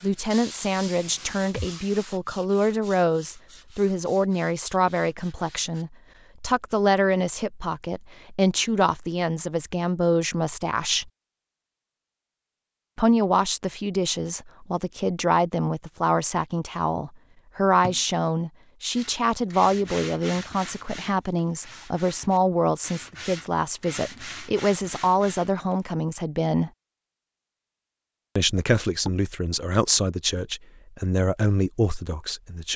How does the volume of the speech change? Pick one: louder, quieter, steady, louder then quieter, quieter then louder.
steady.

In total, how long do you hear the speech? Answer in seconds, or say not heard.
29 s.